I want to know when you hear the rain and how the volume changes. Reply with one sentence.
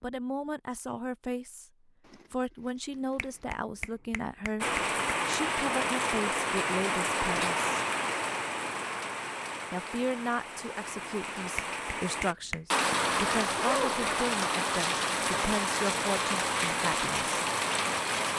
The rain can be heard from 4.6 to 18.3 s, getting quieter then louder.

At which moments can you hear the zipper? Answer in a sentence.
You can hear the zipper from 2.0 to 3.5 s and from 13.3 to 14.1 s.